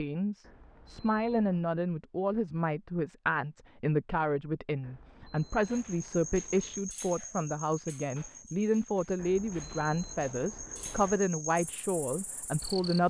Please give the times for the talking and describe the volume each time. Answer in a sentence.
You can hear the talking from 0.0 to 13.0 s, at a steady volume.